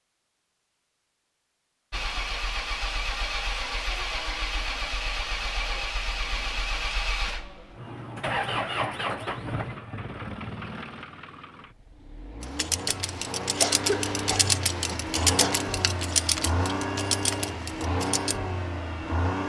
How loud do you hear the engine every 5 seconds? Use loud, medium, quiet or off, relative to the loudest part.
loud, loud, medium, loud.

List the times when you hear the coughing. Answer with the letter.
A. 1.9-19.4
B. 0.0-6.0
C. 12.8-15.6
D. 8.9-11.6
C.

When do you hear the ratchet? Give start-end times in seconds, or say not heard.
12.4-18.4.